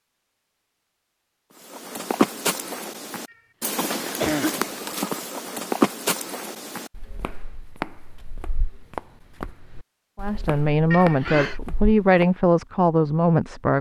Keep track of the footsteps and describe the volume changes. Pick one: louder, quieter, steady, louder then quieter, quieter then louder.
quieter.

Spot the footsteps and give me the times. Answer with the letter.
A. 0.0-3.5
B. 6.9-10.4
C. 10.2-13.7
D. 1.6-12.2
D.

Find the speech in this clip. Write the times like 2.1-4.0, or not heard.
10.2-13.7.